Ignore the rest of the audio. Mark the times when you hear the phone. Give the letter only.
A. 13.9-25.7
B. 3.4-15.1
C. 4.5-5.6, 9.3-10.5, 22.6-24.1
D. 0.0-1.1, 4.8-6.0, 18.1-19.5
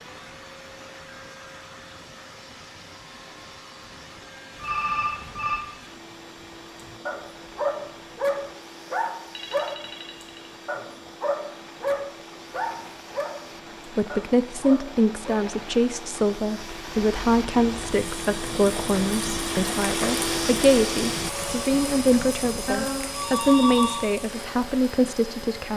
C.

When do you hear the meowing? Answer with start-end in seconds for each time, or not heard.
not heard.